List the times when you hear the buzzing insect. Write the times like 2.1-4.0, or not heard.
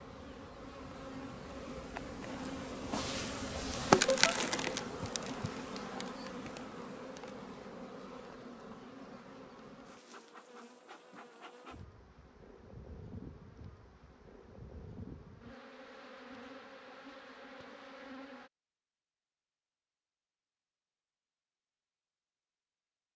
0.0-18.5.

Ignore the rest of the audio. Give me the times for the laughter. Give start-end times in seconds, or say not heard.
3.9-4.3.